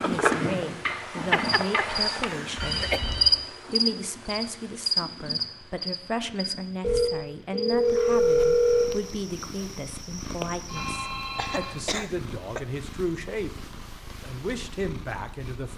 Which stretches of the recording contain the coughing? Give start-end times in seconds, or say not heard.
1.3-3.0, 11.3-12.6.